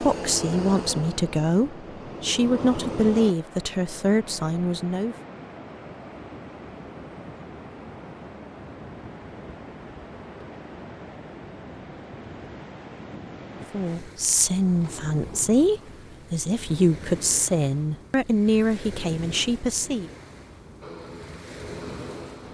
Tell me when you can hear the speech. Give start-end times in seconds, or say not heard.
0.0-5.2, 13.7-20.1.